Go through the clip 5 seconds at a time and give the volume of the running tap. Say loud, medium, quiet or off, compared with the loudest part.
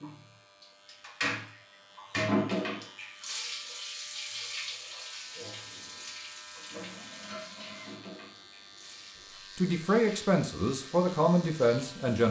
loud, medium, quiet.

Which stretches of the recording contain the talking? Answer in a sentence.
You can hear the talking from 9.6 to 12.2 s.